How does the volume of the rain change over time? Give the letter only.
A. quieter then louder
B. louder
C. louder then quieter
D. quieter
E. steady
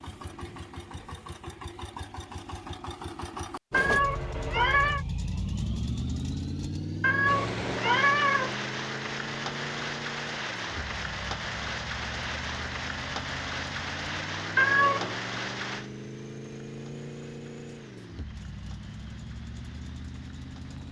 D.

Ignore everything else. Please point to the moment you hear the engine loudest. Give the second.
6 s.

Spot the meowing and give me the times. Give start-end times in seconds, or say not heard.
3.7-5.0, 7.0-8.6, 14.6-15.2.